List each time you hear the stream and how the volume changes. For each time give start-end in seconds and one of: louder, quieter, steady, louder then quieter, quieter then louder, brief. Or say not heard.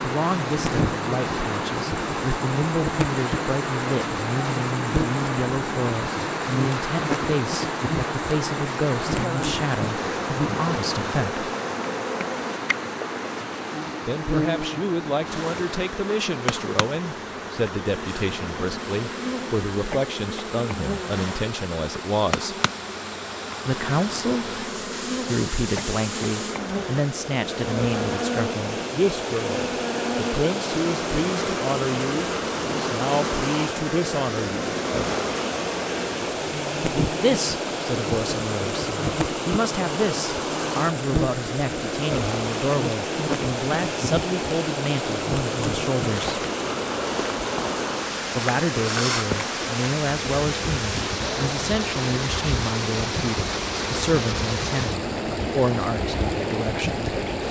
0.0-57.4 quieter then louder.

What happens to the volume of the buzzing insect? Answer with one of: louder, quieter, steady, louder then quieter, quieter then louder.
steady.